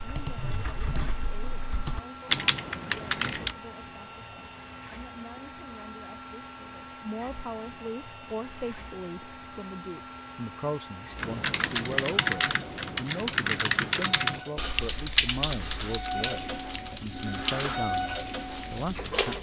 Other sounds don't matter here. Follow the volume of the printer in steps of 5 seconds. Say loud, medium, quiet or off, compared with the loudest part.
medium, medium, medium, loud.